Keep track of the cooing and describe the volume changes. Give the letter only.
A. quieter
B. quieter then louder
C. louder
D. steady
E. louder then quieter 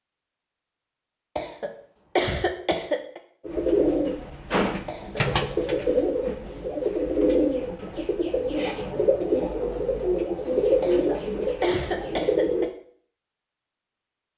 D.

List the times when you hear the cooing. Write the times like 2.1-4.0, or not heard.
3.5-12.7.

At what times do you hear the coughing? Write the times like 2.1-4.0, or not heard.
1.4-3.2, 4.8-5.3, 10.8-12.7.